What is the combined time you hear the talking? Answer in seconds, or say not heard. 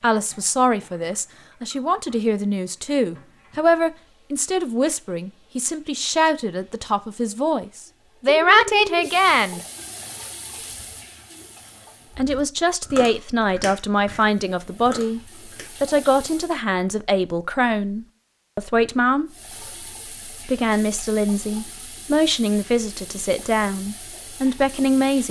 21 s.